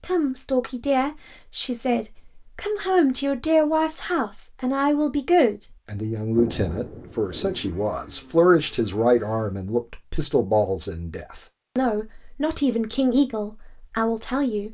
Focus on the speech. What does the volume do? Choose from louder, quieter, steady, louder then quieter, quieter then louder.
steady.